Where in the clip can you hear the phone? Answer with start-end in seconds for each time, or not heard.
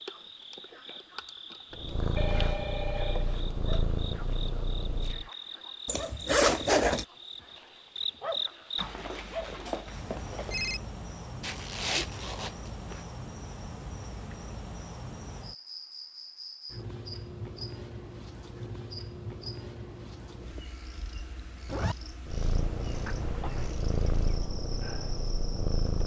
2.1-3.8, 8.8-10.8, 23.1-23.7.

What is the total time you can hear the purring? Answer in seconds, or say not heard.
7 s.